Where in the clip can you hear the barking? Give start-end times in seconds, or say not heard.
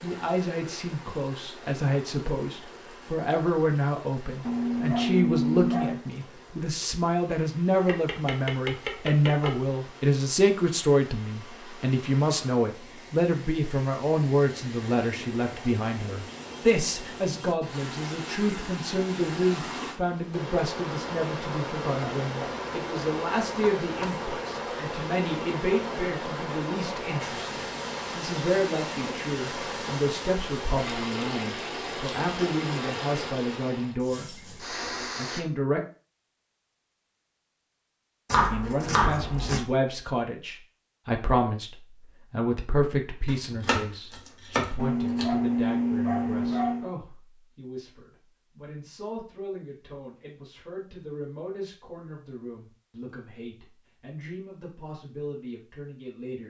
4.5-6.0, 44.8-46.9.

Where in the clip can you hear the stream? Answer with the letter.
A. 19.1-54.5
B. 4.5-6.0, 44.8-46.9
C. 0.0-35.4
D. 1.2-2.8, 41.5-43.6
C.